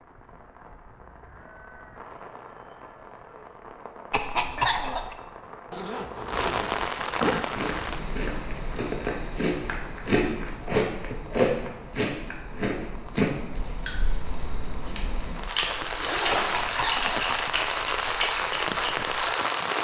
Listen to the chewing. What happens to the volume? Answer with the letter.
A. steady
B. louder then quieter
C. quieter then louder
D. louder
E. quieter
B.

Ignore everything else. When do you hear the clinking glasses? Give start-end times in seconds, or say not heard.
not heard.